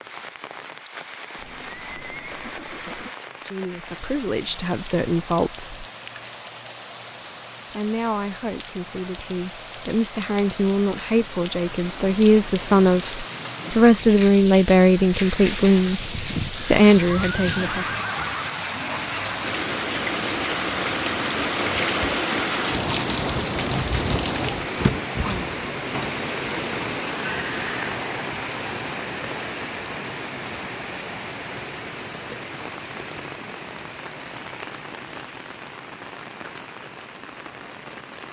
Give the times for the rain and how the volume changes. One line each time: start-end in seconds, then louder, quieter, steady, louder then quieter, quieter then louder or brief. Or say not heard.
0.0-38.2 louder then quieter.